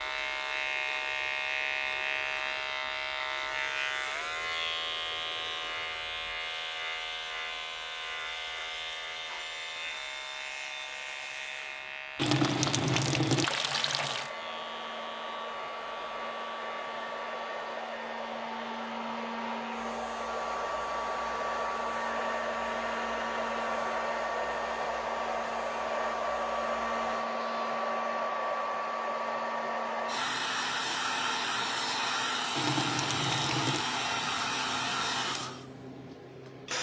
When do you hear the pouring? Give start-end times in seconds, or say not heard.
12.2-14.3, 32.5-33.9.